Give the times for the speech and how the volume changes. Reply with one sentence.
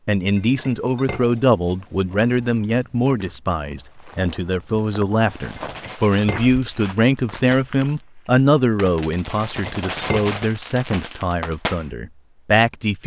The speech can be heard from 0.1 to 13.0 s, at a steady volume.